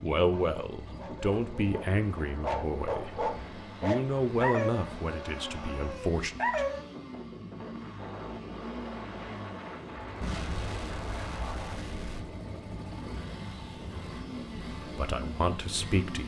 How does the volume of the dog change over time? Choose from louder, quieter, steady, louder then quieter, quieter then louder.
louder then quieter.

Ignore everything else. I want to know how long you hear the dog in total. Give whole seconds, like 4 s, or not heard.
7 s.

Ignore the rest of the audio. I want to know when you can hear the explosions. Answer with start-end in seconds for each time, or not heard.
10.2-12.2.